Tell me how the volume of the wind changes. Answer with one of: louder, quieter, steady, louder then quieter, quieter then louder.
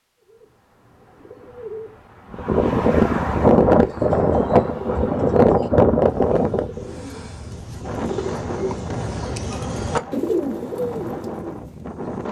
quieter.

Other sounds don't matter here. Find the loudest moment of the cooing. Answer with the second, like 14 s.
10 s.